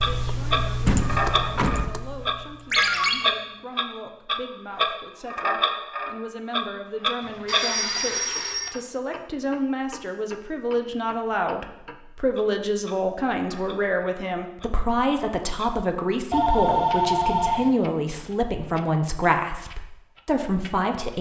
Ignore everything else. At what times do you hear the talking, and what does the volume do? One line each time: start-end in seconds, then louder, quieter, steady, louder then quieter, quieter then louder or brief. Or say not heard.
0.0-21.1 louder.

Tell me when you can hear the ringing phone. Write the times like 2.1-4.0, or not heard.
2.7-3.1, 7.2-8.7, 16.3-17.7.